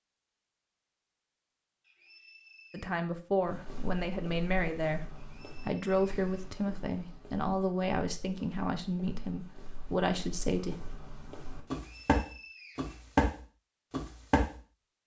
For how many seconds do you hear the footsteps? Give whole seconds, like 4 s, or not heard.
11 s.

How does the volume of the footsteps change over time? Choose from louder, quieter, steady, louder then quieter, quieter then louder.
quieter then louder.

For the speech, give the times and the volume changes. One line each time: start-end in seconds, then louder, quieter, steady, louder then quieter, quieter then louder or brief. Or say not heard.
2.7-10.8 steady.